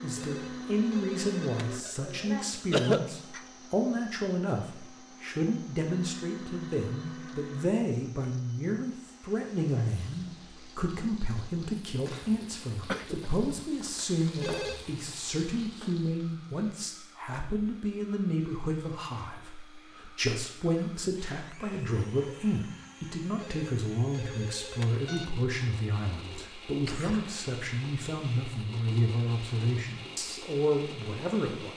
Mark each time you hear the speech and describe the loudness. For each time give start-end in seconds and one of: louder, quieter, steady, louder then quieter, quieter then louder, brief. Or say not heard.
0.0-31.7 steady.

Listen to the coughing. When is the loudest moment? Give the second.
3 s.